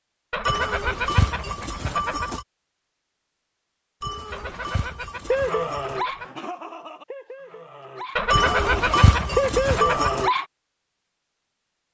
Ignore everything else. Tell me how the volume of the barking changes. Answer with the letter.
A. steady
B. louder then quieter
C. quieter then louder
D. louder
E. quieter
C.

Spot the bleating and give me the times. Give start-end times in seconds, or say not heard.
0.5-2.5, 4.0-6.0, 8.3-10.3.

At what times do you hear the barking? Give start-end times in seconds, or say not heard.
5.3-10.4.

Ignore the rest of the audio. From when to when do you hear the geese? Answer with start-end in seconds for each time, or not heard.
0.3-2.3, 4.3-6.3, 8.2-10.1.